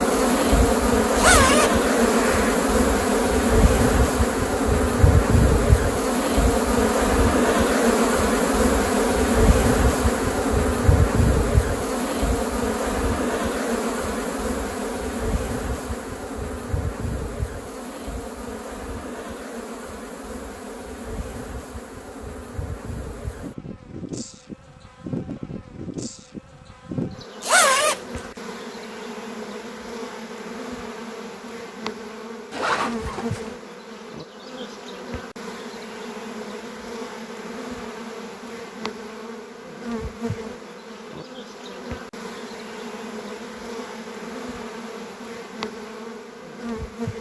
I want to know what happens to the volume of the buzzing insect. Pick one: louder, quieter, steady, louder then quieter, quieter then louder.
quieter.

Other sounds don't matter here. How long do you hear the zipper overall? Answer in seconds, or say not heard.
3 s.